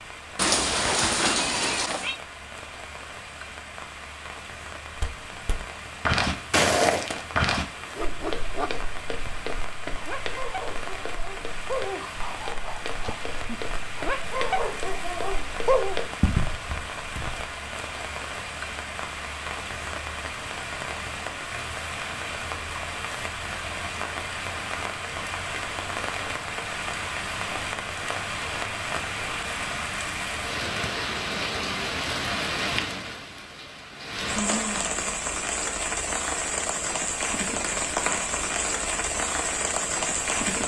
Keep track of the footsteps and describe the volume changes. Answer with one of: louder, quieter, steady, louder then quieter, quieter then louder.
quieter then louder.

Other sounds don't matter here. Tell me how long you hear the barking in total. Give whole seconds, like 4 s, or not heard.
8 s.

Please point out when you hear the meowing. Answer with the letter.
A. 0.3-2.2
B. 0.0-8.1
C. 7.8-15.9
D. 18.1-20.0
A.